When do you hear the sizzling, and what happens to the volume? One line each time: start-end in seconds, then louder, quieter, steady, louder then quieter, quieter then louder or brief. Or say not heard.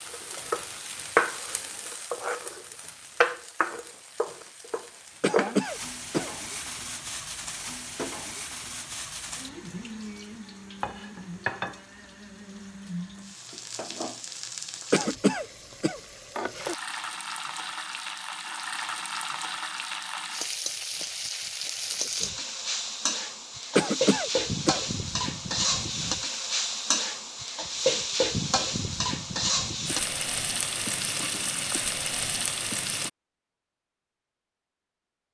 0.0-33.1 quieter then louder.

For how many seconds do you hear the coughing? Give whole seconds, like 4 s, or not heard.
3 s.